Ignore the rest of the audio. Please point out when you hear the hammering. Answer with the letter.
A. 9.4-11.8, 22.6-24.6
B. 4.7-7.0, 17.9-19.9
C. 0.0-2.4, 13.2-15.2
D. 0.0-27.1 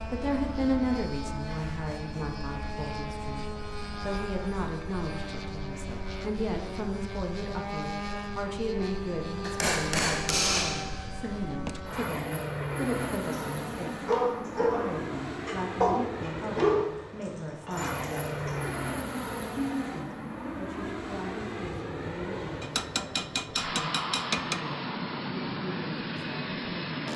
A.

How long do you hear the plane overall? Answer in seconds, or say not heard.
27 s.